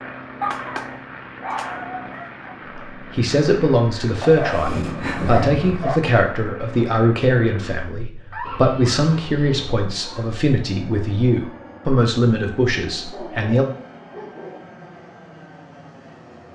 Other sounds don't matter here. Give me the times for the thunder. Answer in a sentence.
You can hear the thunder from 4.5 to 5.8 s.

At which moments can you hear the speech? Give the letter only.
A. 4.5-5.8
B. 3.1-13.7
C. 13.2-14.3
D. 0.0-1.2
B.